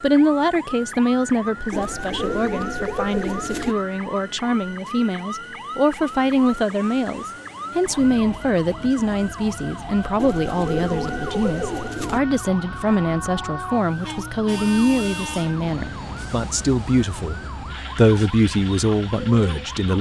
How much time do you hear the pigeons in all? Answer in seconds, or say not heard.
4 s.